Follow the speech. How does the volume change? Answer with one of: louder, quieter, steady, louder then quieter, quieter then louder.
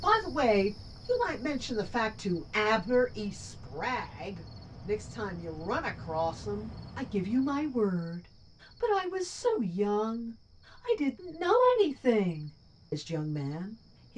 quieter then louder.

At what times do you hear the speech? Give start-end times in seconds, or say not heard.
0.0-14.1.